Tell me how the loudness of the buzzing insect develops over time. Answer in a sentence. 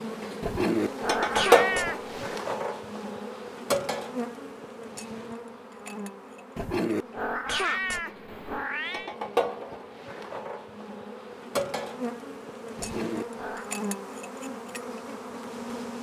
The volume of the buzzing insect goes down.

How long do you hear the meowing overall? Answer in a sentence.
The meowing can be heard for 5 seconds in total.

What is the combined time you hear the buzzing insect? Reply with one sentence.
You can hear the buzzing insect for 16 seconds altogether.